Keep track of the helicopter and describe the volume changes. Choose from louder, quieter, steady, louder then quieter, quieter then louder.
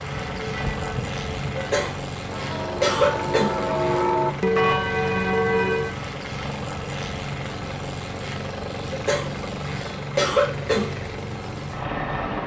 steady.